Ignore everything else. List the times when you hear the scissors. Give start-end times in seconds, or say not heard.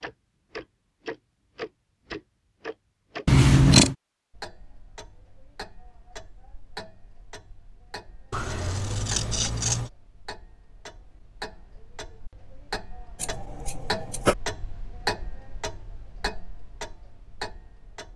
3.2-4.0, 8.3-9.9, 13.2-14.3.